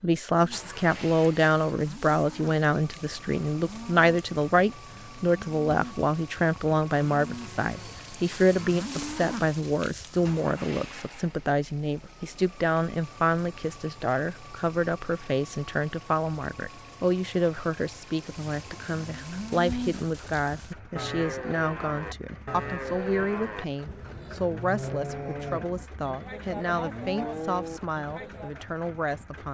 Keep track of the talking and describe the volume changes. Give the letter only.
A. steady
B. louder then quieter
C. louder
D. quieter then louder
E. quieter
E.